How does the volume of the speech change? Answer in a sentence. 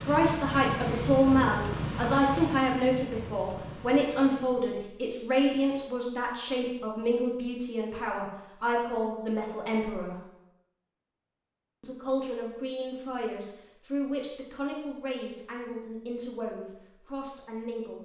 The volume of the speech goes down.